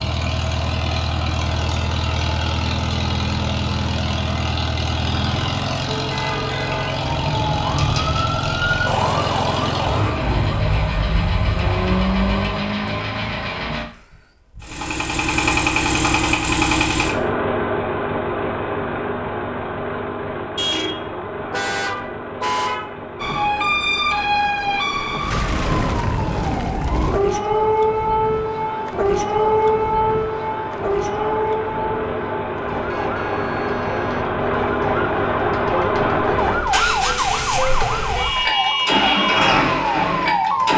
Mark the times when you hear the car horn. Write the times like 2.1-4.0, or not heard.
6.1-7.0, 20.6-23.0, 32.9-34.3.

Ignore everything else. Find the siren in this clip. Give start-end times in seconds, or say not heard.
5.8-12.7, 23.2-40.7.